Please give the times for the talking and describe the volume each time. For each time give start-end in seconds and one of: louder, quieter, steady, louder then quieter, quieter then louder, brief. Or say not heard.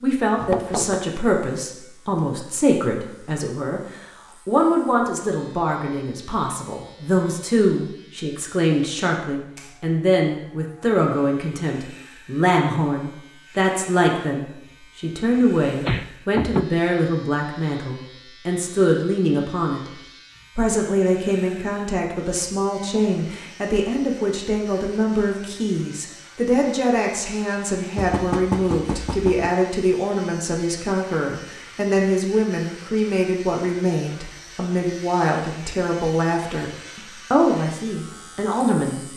0.0-19.9 steady
20.6-39.1 steady.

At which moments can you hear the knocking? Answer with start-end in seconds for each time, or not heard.
0.3-1.1, 15.4-16.6, 27.9-29.5.